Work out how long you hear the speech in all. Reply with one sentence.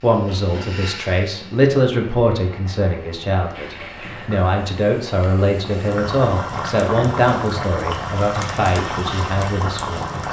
The speech can be heard for 10 seconds in total.